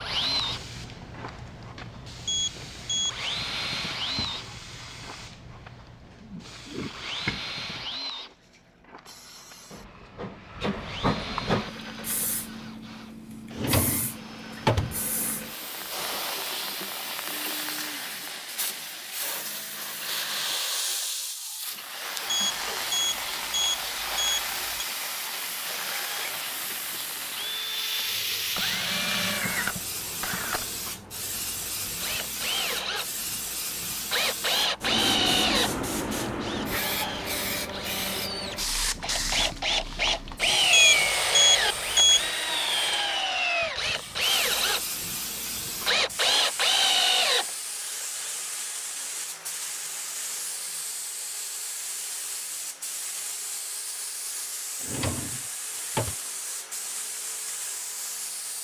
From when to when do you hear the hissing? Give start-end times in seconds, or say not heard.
0.0-58.5.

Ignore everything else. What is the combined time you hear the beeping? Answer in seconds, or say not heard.
5 s.